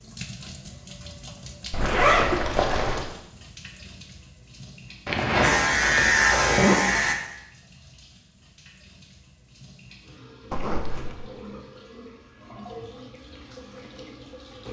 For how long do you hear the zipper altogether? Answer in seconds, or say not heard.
4 s.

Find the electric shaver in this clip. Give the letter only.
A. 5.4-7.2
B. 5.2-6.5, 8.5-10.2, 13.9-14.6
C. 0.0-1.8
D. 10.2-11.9
A.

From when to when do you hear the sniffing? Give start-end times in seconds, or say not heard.
not heard.